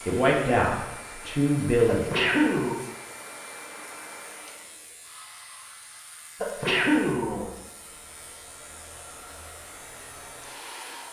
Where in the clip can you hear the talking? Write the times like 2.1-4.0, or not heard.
0.0-2.1.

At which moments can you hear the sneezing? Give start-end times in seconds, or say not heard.
1.9-2.8, 6.4-7.5.